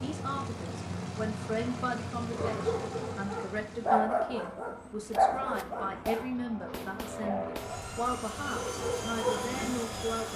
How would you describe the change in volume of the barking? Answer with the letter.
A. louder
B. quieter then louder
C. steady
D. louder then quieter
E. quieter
B.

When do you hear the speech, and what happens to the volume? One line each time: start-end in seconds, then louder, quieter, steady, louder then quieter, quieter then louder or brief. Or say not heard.
0.0-10.3 steady.